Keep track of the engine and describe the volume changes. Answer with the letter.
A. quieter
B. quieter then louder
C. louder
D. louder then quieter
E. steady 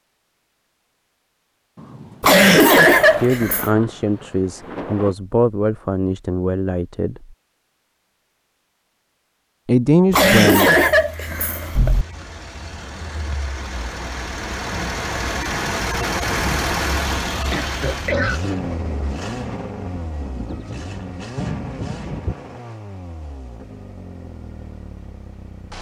D.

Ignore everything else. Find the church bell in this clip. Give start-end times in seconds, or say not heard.
not heard.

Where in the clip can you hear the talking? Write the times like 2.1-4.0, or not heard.
3.1-7.3, 9.7-10.8.